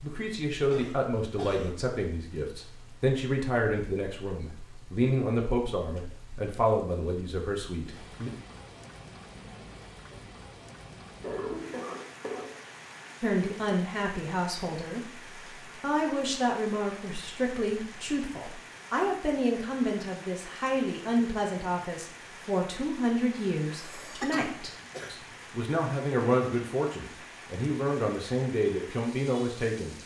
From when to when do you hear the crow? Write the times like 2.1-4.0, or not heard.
not heard.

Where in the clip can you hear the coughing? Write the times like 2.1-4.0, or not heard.
0.7-1.8, 11.2-12.7, 23.6-25.1.